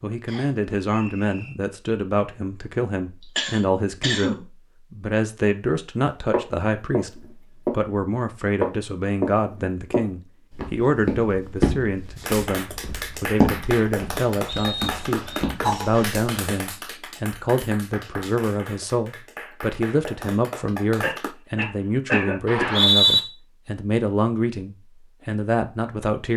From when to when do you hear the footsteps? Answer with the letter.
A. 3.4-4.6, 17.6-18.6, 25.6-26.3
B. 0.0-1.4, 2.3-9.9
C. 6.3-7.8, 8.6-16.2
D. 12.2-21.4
C.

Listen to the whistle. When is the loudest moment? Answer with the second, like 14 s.
23 s.